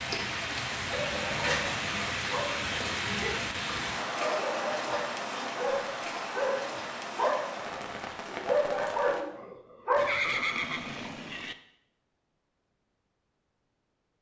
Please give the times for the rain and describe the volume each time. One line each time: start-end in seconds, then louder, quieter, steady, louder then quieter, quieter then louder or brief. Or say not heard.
0.0-9.2 quieter.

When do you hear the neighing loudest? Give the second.
10 s.